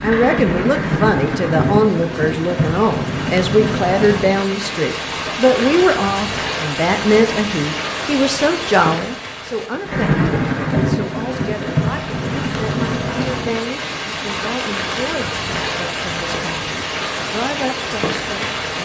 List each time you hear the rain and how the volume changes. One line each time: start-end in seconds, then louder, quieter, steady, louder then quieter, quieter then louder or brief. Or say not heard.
0.0-18.8 steady.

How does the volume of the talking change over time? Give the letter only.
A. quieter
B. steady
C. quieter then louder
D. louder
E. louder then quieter
A.